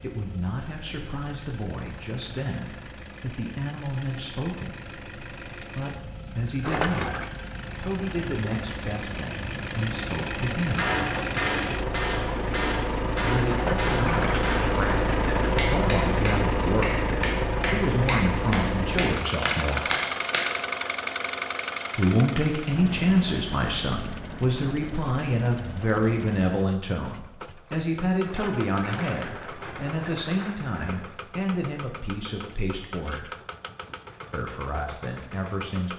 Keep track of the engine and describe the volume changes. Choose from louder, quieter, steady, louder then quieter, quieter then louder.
louder then quieter.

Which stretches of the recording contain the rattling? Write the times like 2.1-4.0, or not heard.
6.6-7.3, 13.4-15.5, 28.2-31.0.